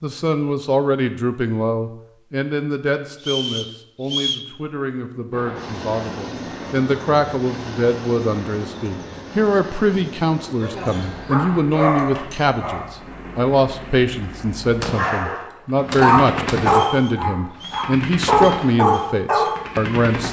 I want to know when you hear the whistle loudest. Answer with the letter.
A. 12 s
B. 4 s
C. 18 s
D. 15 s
B.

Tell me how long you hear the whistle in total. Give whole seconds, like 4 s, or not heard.
2 s.